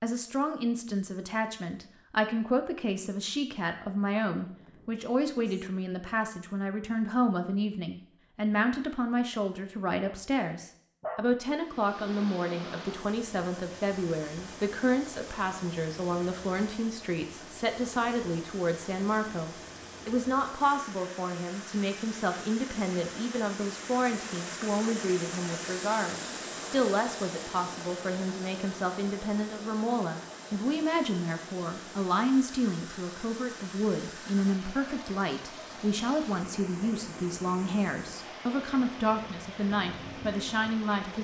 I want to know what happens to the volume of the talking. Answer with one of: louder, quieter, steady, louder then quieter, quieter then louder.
steady.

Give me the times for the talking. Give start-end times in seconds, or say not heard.
0.0-41.1.